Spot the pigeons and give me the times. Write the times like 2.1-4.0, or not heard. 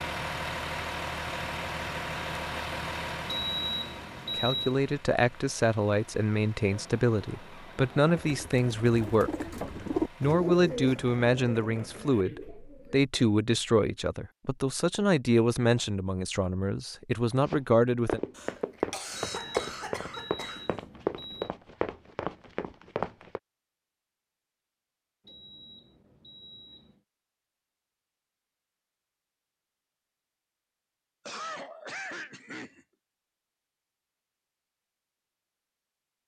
6.7-13.1.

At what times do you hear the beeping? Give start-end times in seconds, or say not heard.
3.2-4.8, 19.1-21.5, 25.2-27.0.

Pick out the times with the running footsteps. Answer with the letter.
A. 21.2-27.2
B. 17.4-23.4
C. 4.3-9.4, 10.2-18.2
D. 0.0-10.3
B.